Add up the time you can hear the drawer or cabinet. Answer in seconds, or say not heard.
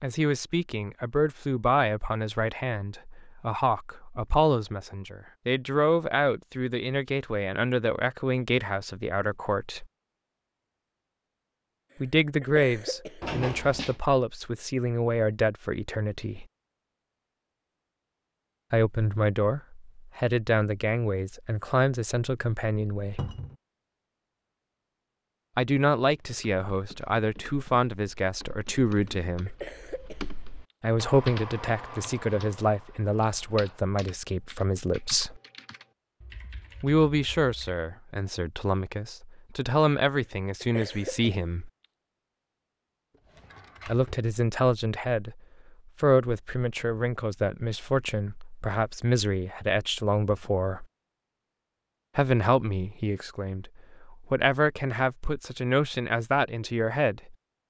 2 s.